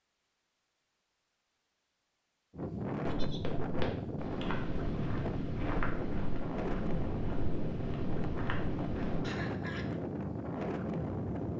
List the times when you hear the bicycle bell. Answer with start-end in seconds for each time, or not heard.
not heard.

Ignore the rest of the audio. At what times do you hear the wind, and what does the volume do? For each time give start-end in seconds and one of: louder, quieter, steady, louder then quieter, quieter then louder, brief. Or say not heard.
2.5-11.5 steady.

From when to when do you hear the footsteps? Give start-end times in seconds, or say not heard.
3.2-9.2.